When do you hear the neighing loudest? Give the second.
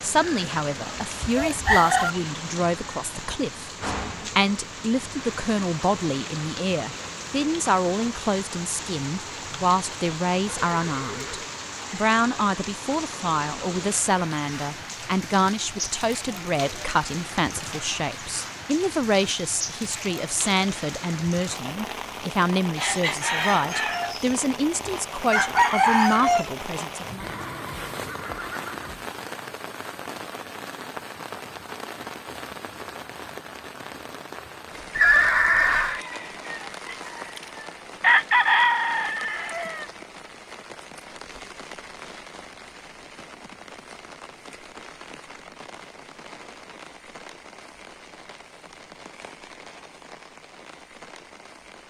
35 s.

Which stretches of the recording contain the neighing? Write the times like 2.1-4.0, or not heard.
10.4-11.5, 27.2-29.1, 35.0-36.0.